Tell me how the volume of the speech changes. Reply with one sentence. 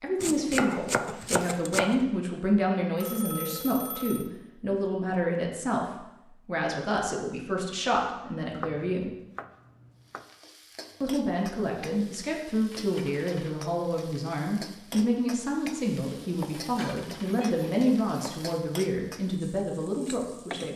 The loudness of the speech stays about the same.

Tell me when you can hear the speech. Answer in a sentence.
The speech can be heard from 0.0 to 9.2 s and from 11.0 to 20.7 s.